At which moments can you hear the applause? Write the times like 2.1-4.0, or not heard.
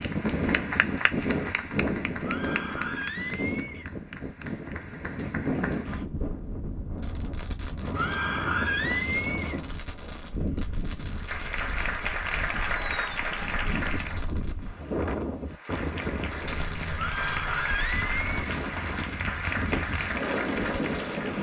0.0-6.0, 11.1-14.2, 15.5-21.3.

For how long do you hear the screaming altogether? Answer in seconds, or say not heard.
5 s.